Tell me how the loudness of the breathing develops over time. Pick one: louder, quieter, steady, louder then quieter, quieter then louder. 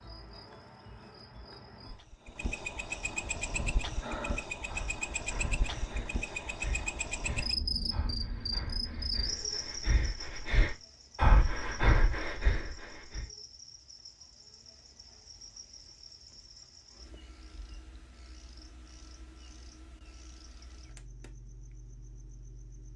quieter then louder.